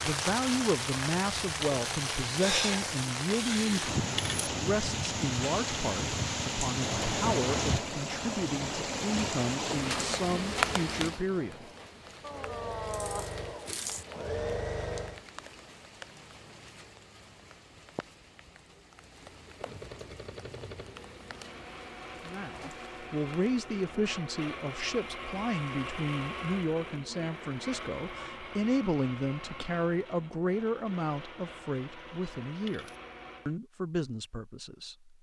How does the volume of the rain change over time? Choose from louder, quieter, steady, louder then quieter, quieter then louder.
quieter.